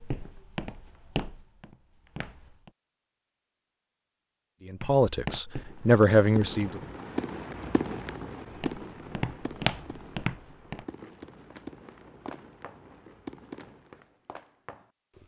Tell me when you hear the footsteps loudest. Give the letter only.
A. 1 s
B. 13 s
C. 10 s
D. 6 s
C.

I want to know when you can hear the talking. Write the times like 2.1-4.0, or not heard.
4.7-6.8.